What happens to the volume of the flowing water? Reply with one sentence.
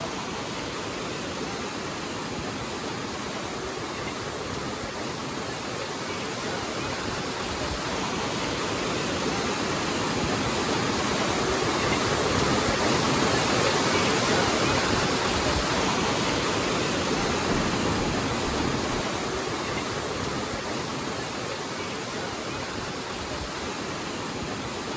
The volume of the flowing water goes up, then down.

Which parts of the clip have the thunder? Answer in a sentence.
You can hear the thunder from 17.2 to 19.1 s.